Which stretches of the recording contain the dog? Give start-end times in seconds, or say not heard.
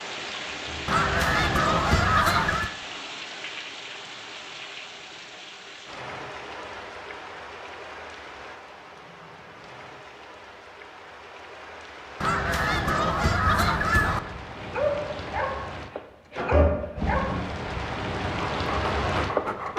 14.6-17.5, 18.4-19.7.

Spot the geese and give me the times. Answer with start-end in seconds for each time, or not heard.
0.8-2.7, 12.2-14.2.